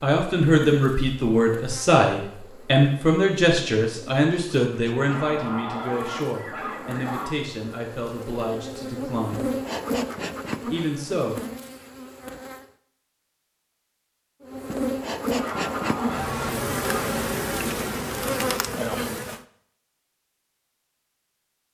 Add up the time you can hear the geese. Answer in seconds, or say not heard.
4 s.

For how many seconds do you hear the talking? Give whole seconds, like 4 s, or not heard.
10 s.